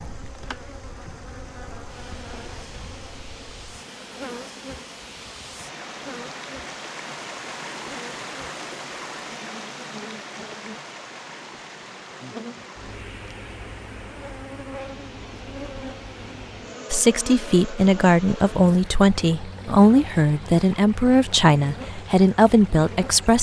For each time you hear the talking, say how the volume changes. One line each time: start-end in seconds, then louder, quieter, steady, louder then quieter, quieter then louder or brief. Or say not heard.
16.9-23.3 steady.